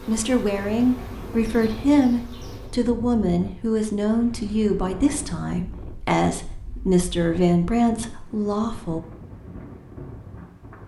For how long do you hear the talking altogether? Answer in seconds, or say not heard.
9 s.